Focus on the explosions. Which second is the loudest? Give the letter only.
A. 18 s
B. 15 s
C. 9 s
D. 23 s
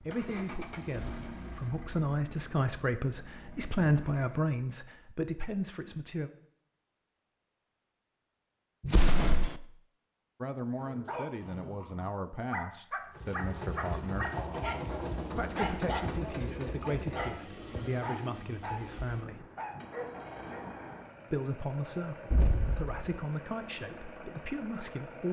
C.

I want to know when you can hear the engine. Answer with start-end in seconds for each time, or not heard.
0.0-4.5, 13.1-25.2.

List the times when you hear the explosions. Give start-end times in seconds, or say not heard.
8.8-9.6, 22.3-23.0.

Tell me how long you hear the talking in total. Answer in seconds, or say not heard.
18 s.